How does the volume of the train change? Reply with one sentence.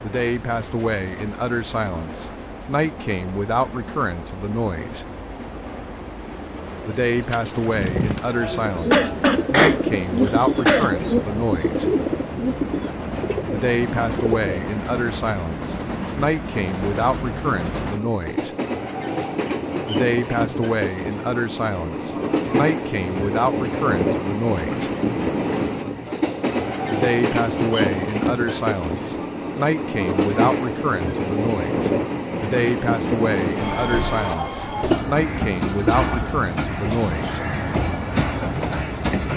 The volume of the train goes up.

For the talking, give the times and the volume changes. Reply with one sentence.
The talking can be heard from 0.0 to 5.0 s, at a steady volume; from 6.8 to 11.9 s, at a steady volume; from 13.5 to 18.6 s, at a steady volume; from 19.9 to 24.9 s, at a steady volume; and from 26.9 to 37.4 s, at a steady volume.